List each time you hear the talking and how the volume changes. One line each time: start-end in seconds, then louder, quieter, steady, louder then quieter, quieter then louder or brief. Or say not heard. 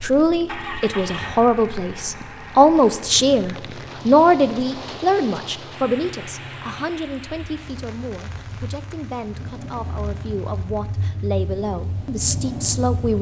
0.0-13.1 quieter then louder.